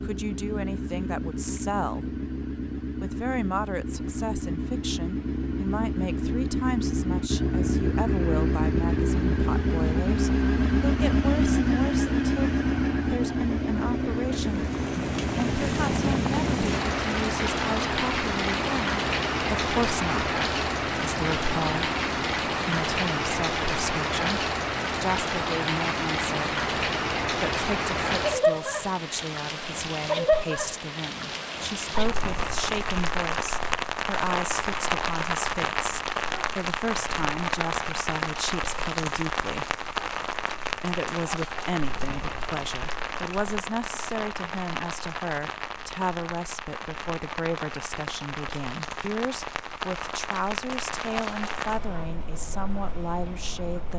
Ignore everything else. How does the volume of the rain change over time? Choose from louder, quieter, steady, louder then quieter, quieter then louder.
quieter.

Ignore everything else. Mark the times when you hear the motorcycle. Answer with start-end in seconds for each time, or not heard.
0.0-22.4.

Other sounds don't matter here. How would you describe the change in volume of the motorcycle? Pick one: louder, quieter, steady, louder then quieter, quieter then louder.
louder then quieter.